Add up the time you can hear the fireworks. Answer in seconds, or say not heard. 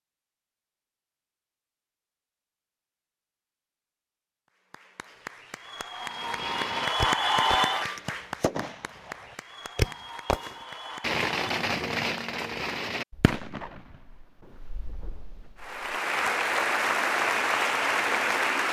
10 s.